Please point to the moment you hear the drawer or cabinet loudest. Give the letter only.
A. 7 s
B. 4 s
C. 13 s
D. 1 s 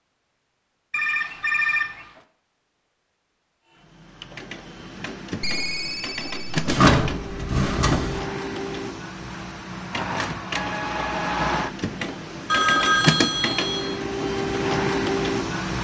A.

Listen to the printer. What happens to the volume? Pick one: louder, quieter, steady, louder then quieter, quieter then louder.
louder.